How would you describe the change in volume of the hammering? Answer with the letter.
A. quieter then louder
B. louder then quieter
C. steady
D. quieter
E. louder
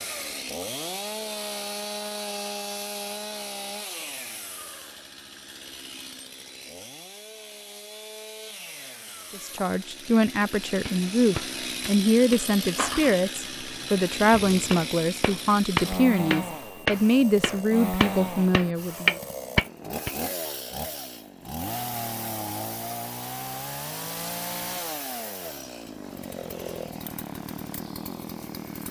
A.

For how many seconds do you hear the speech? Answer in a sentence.
The speech can be heard for 10 seconds in total.